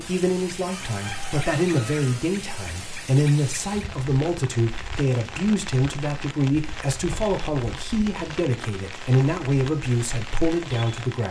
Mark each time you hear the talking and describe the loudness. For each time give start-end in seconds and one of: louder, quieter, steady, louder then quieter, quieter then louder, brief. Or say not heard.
0.0-11.2 steady.